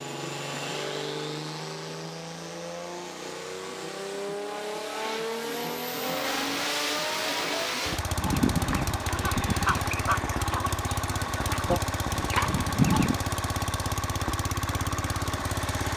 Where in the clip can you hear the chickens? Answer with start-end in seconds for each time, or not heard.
8.2-13.2.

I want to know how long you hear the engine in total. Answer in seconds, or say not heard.
16 s.